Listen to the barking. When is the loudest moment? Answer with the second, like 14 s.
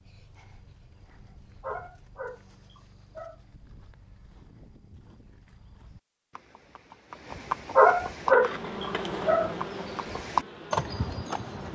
8 s.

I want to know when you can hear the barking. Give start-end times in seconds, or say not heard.
1.6-3.4, 7.8-9.6.